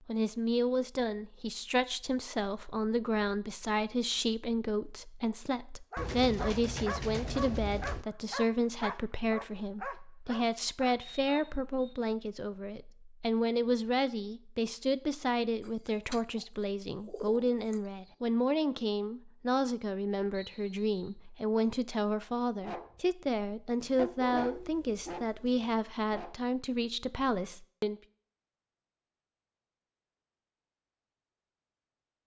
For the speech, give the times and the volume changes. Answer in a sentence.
The speech can be heard from 0.1 to 28.0 s, at a steady volume.